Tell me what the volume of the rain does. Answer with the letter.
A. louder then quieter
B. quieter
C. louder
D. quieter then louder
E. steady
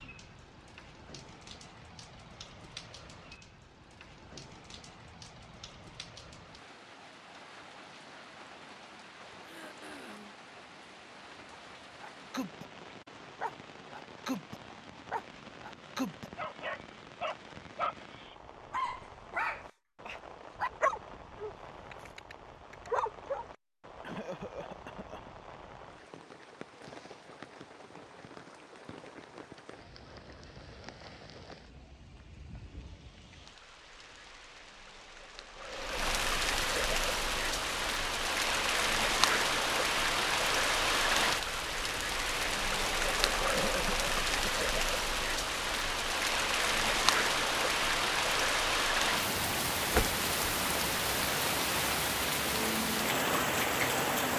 C.